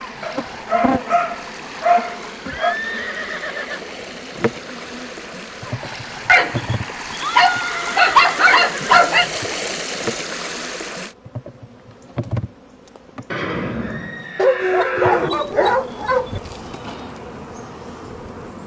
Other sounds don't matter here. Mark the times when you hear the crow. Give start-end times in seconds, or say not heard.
not heard.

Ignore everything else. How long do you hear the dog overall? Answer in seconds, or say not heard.
8 s.